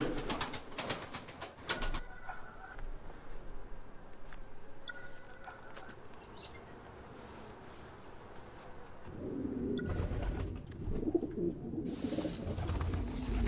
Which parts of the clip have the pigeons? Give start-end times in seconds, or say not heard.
0.0-2.0, 9.1-13.4.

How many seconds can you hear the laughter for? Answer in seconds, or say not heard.
2 s.